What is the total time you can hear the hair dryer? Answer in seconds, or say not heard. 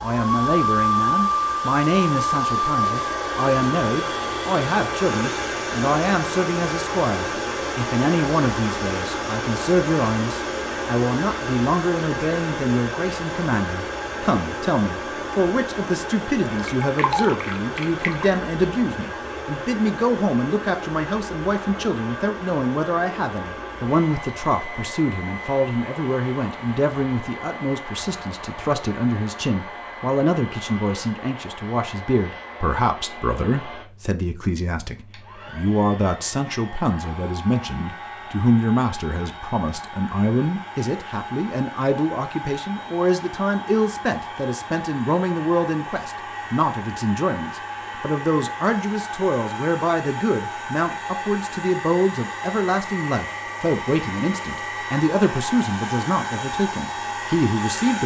58 s.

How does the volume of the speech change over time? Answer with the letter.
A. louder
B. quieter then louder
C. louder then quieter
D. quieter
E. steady
E.